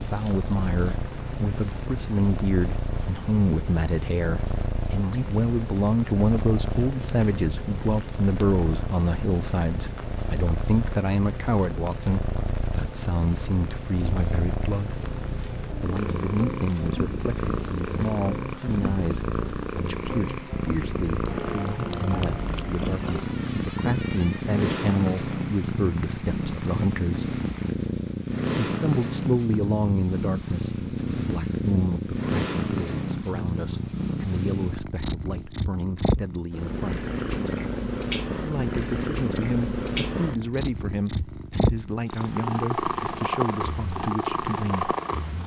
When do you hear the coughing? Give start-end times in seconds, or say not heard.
not heard.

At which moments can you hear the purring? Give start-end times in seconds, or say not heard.
0.0-45.4.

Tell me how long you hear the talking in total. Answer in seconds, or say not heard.
42 s.